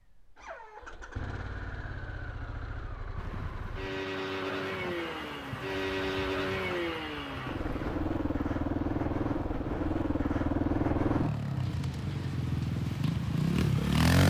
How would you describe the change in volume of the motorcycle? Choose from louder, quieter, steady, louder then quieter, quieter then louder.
louder.